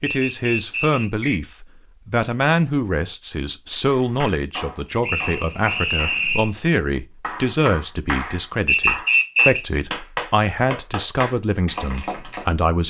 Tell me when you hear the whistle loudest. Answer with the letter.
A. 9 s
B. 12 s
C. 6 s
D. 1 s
A.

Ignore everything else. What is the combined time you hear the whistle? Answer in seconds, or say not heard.
4 s.